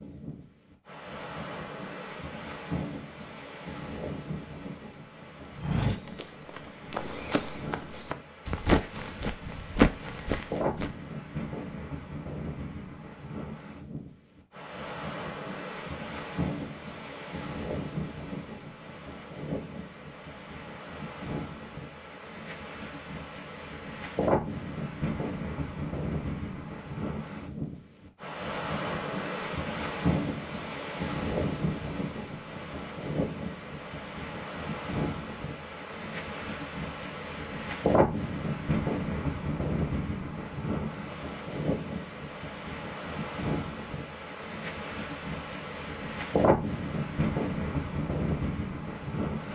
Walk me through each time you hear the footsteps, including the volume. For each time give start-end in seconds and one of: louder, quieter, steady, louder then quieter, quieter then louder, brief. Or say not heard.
5.5-10.9 louder.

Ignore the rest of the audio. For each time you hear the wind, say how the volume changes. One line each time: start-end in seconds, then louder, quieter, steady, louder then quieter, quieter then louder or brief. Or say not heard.
0.0-49.5 louder.